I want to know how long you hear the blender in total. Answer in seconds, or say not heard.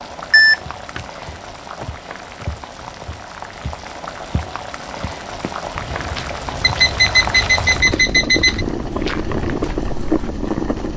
not heard.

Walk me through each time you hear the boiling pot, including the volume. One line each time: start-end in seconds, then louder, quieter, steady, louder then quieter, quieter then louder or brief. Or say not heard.
0.0-10.9 louder.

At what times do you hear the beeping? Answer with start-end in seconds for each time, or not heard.
0.3-1.1, 6.6-8.7.